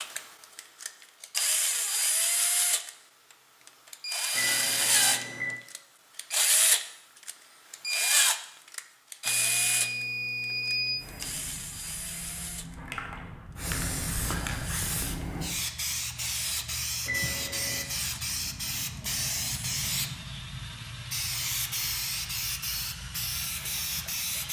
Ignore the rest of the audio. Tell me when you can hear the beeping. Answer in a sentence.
The beeping can be heard from 4.3 to 5.6 s, from 9.2 to 11.1 s and from 17.1 to 17.9 s.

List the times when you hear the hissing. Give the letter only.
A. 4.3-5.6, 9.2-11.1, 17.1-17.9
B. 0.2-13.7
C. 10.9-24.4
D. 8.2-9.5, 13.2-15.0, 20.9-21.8
C.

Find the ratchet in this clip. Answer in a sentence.
You can't hear the ratchet here.